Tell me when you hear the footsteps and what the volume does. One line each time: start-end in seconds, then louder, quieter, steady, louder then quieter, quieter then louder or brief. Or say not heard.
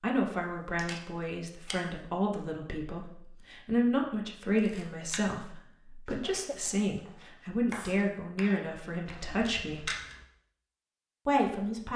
not heard.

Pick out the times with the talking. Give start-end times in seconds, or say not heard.
0.0-9.9, 11.2-11.9.